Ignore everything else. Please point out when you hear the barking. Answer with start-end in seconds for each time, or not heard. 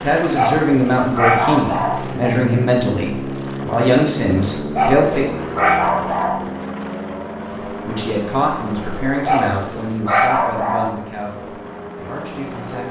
0.3-2.3, 4.8-6.5, 9.2-11.0.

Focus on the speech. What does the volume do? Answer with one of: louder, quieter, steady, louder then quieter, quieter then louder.
quieter.